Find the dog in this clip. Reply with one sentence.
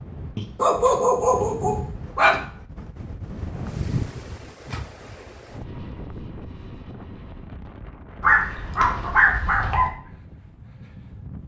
You can hear the dog from 0.3 to 2.4 s and from 8.2 to 9.9 s.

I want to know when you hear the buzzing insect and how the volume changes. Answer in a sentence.
The buzzing insect can't be heard in this clip.